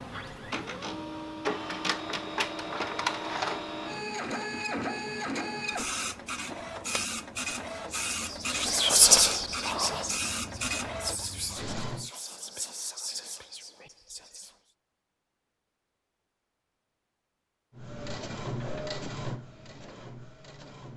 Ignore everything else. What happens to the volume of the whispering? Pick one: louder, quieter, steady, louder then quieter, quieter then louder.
quieter.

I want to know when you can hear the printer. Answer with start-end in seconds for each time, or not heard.
0.0-12.1, 17.8-20.9.